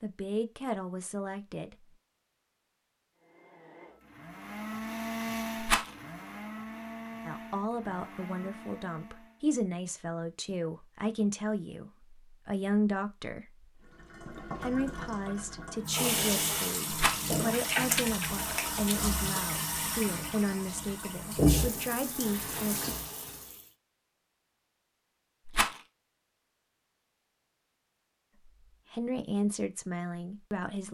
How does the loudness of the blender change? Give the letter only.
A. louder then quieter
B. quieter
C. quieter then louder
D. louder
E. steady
A.